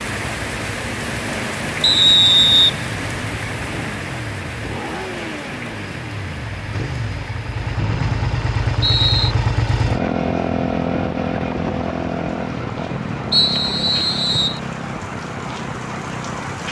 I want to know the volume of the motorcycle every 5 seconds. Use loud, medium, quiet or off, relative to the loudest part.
medium, loud, loud, medium.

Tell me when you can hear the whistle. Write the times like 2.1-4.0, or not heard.
1.8-2.8, 7.8-9.3, 13.3-14.6.